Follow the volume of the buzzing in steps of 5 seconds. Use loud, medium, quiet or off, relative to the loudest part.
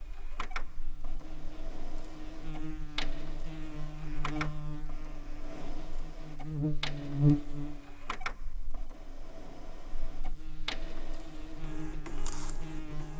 medium, loud, quiet.